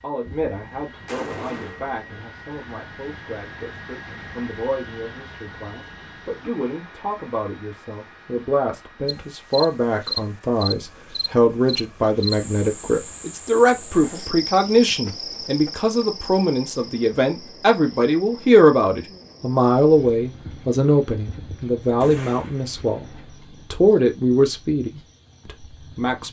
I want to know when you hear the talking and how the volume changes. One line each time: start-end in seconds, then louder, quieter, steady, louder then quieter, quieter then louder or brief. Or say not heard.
0.0-26.2 louder.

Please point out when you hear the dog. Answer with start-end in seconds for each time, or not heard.
not heard.